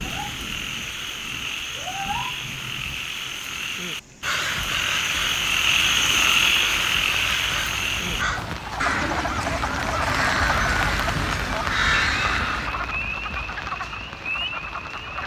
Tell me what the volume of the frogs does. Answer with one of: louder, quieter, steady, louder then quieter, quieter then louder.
louder then quieter.